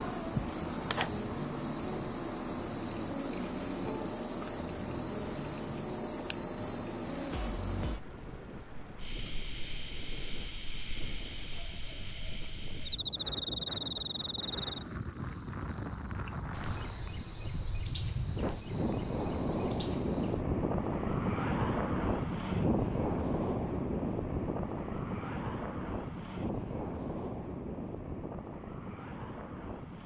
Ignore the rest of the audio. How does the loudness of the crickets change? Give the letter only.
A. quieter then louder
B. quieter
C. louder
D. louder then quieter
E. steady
B.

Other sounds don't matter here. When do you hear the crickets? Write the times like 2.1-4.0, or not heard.
0.0-20.4.